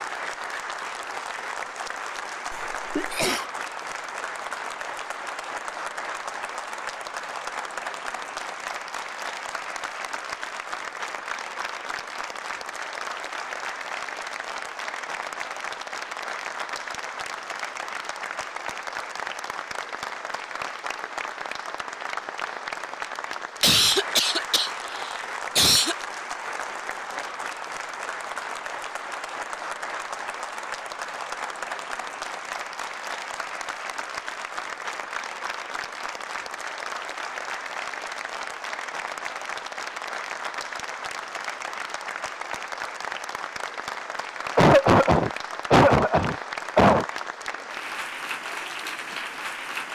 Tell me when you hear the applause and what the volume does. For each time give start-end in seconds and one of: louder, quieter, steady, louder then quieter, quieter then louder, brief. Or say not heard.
0.0-49.8 steady.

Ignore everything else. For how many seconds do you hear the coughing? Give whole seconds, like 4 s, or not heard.
6 s.